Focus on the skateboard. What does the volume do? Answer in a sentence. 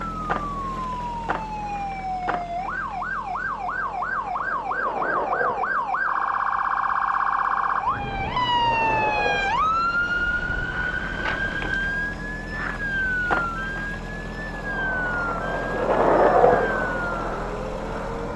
The loudness of the skateboard goes up.